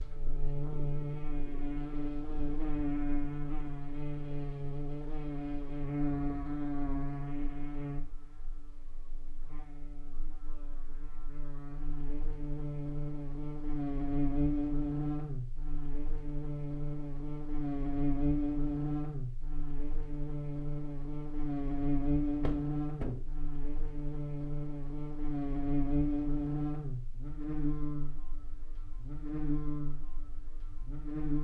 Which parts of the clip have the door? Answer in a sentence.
You can hear the door from 22.4 to 23.2 s.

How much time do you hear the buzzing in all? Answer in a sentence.
You can hear the buzzing for 31 seconds altogether.